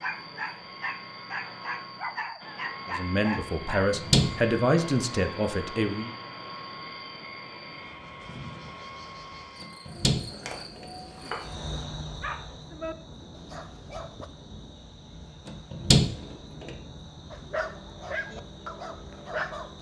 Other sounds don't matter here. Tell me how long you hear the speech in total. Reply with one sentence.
You can hear the speech for 3 seconds altogether.